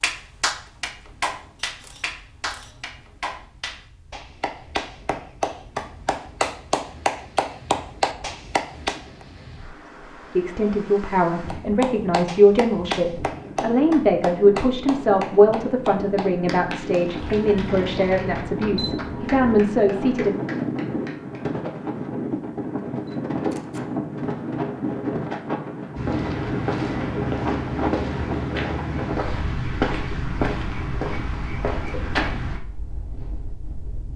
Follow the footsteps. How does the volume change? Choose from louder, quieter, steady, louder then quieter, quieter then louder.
steady.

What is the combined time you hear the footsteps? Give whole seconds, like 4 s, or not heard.
7 s.